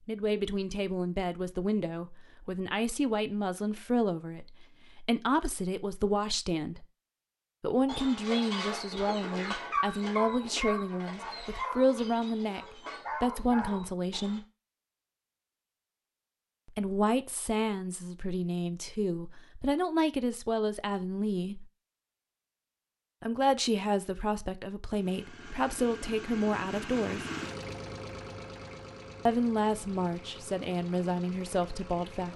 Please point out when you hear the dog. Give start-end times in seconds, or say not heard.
7.8-14.4.